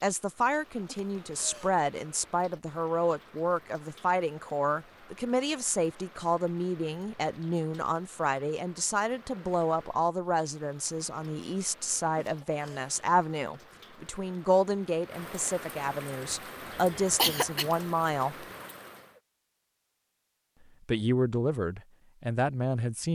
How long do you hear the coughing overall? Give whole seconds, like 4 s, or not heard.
3 s.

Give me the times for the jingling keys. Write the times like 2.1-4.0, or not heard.
not heard.